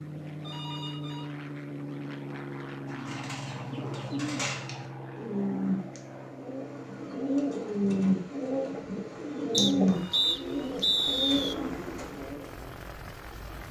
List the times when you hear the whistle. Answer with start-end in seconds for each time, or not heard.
9.5-11.6.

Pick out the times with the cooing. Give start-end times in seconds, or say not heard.
2.9-12.4.